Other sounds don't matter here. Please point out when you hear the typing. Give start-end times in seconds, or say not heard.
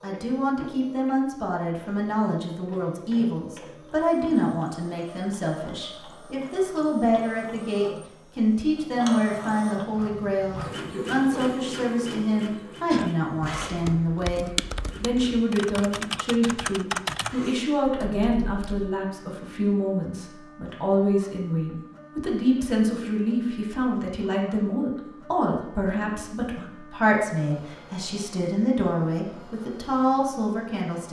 12.9-18.9.